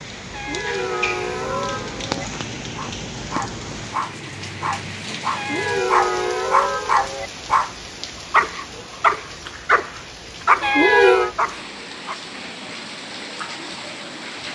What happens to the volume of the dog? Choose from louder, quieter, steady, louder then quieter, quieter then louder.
louder.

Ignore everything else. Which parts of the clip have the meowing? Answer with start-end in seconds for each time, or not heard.
0.3-2.2, 5.3-7.3, 10.6-11.3.